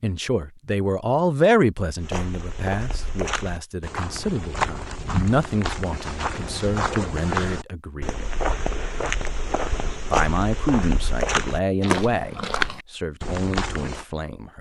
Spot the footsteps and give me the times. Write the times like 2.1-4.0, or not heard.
2.0-14.1.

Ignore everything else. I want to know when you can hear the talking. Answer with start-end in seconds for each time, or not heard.
0.0-8.3, 10.1-14.5.